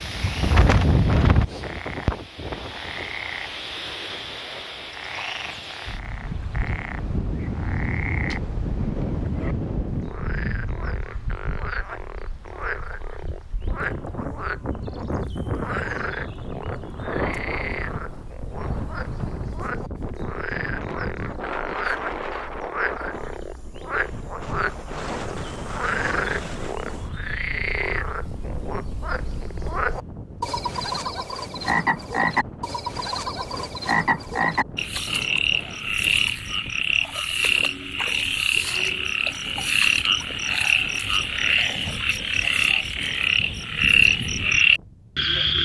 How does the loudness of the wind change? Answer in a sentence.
The loudness of the wind goes down.